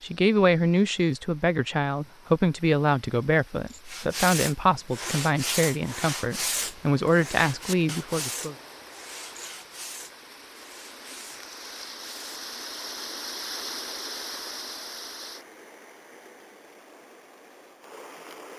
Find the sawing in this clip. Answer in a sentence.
The sawing can be heard from 3.9 to 12.4 s.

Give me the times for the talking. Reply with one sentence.
The talking can be heard from 0.0 to 8.6 s.